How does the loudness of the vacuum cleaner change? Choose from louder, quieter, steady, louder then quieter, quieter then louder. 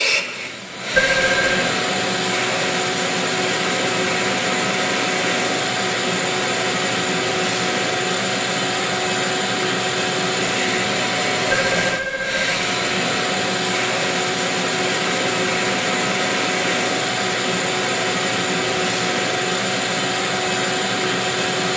steady.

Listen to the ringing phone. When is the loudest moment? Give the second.
1 s.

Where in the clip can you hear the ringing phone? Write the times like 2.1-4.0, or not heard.
0.9-1.7, 11.7-12.6.